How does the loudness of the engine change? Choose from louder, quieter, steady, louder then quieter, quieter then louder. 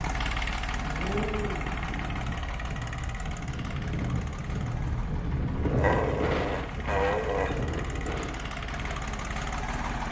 quieter then louder.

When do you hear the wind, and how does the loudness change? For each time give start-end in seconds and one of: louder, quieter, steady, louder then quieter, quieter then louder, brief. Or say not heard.
0.0-9.9 louder then quieter.